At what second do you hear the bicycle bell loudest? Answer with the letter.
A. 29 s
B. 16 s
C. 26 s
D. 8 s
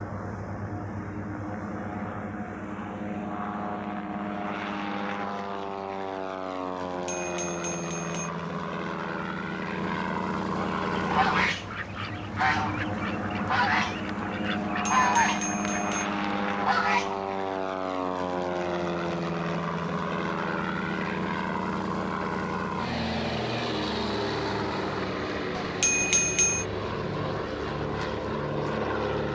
C.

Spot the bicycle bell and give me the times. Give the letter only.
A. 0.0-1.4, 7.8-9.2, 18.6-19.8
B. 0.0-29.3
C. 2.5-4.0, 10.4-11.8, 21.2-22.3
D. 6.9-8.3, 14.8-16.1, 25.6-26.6
D.